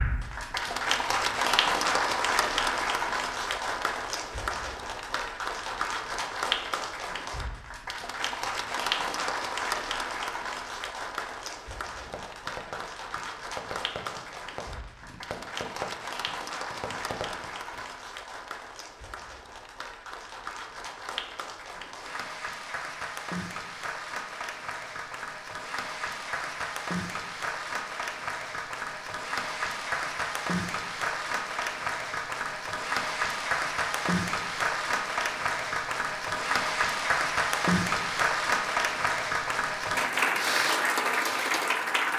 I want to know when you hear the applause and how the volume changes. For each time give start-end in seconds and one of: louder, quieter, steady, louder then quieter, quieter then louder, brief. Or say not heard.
0.0-42.1 quieter then louder.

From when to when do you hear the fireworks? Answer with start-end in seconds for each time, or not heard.
12.1-17.9.